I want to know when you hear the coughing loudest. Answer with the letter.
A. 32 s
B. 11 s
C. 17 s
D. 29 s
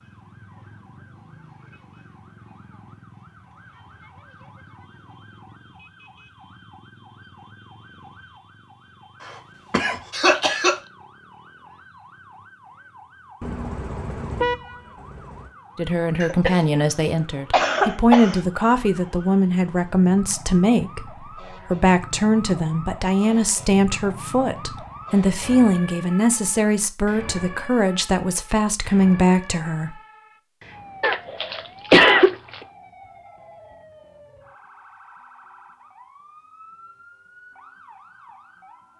A.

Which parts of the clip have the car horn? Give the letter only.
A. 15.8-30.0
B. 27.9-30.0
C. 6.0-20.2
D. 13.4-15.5
D.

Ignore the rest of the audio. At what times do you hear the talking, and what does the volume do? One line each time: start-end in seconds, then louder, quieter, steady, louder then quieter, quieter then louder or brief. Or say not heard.
15.8-30.0 steady.